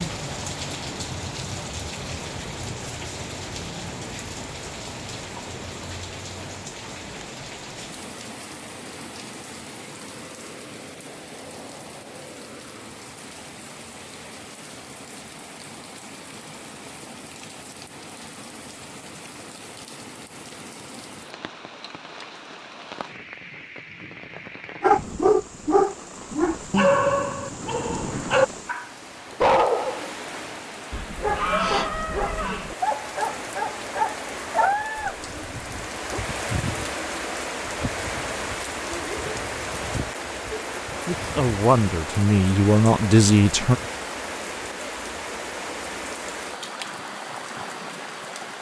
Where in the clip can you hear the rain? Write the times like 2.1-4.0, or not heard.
0.0-48.5.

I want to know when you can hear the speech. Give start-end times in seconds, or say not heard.
41.0-43.8.